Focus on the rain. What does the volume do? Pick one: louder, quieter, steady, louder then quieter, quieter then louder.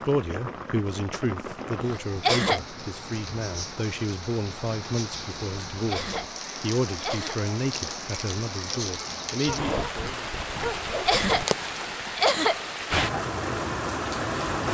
louder.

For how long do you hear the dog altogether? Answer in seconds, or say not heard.
2 s.